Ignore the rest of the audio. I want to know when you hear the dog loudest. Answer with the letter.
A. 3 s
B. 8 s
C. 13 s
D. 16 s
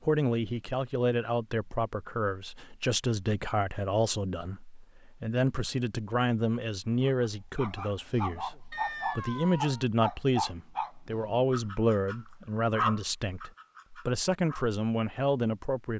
C.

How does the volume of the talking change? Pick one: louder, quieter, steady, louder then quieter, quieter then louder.
steady.